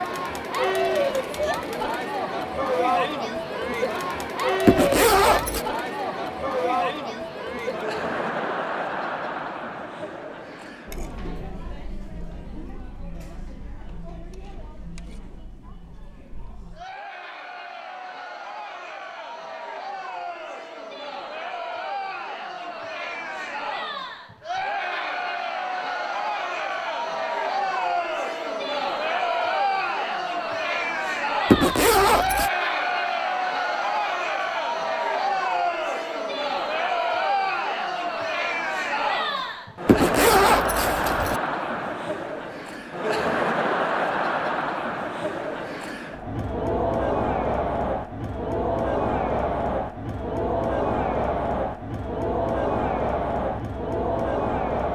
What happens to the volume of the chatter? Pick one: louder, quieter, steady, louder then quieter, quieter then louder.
quieter then louder.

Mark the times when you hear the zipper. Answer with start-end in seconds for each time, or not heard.
4.7-5.6, 31.5-32.5, 39.9-41.4.